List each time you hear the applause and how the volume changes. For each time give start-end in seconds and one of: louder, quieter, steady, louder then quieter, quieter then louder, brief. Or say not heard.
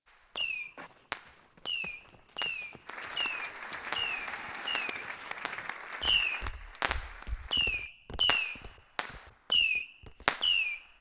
2.9-7.9 quieter.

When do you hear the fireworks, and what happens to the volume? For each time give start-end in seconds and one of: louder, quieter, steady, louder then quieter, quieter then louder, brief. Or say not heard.
0.3-10.8 louder.